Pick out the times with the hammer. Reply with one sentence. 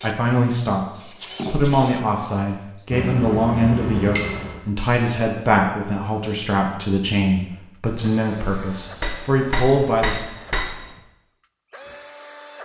You can hear the hammer from 2.9 to 4.6 s and from 8.7 to 10.8 s.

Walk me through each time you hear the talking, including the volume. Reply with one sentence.
The talking can be heard from 0.0 to 10.2 s, at a steady volume.